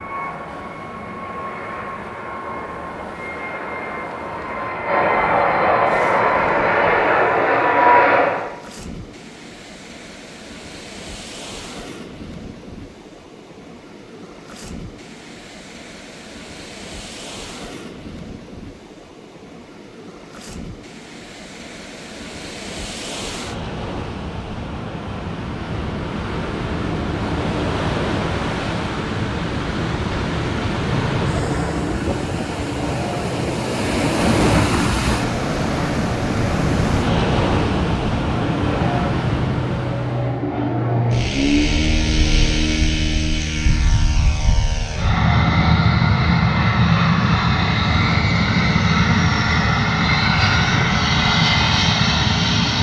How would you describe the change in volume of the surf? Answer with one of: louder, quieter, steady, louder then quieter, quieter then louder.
louder.